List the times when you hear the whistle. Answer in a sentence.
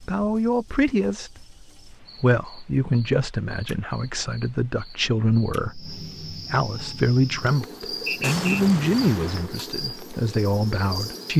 You can hear the whistle from 8.1 to 8.6 s.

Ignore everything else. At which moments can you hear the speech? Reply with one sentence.
The speech can be heard from 0.1 to 11.3 s.